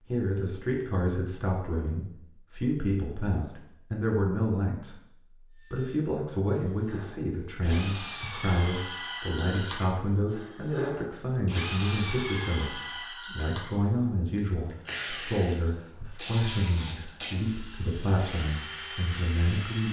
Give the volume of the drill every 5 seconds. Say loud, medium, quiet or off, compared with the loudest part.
off, loud, loud, loud.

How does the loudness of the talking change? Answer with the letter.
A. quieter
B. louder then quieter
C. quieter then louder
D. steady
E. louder
D.